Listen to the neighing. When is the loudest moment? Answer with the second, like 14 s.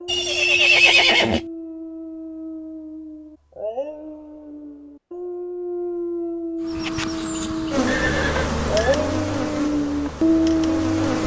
1 s.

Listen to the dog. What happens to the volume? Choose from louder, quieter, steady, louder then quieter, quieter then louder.
louder.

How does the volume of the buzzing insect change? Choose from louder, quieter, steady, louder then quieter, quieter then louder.
louder then quieter.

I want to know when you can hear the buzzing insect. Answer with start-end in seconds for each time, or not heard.
6.6-11.2.